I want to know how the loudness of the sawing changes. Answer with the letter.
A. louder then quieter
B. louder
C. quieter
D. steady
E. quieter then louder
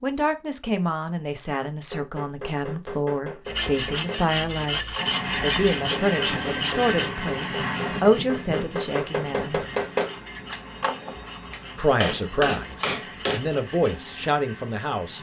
C.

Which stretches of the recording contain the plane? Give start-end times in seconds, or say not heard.
5.0-15.1.